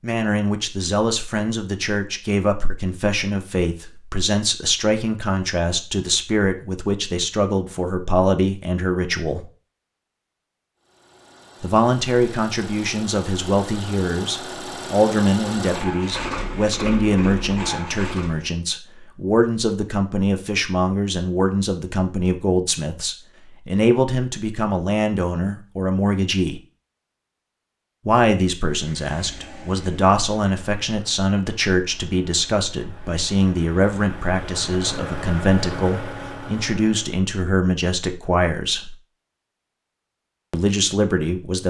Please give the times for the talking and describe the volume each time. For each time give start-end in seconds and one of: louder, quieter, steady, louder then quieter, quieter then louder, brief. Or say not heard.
0.0-9.4 steady
11.6-26.6 steady
28.1-39.0 steady
40.5-41.6 brief.